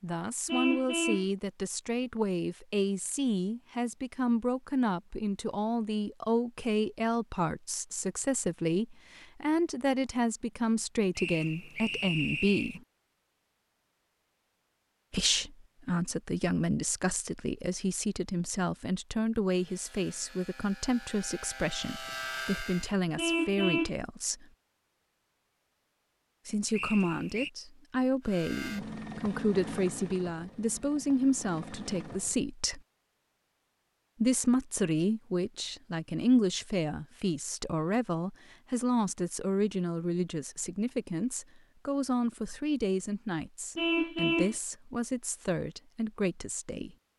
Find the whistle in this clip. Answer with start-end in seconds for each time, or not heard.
11.2-12.8, 26.7-27.5.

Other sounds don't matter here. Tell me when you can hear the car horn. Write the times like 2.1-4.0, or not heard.
0.5-1.3, 23.1-23.9, 43.8-44.5.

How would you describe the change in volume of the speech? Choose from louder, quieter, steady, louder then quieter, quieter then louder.
steady.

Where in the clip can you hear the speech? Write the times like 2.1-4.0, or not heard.
0.0-12.8, 15.1-24.4, 26.4-32.8, 34.2-47.0.